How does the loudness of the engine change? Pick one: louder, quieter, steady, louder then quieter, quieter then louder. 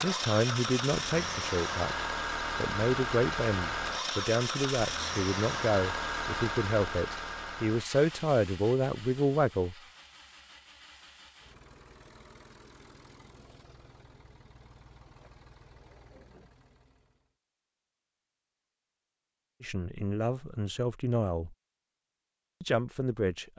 quieter.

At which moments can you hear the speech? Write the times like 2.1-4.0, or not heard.
0.0-9.8, 19.6-21.6, 22.6-23.5.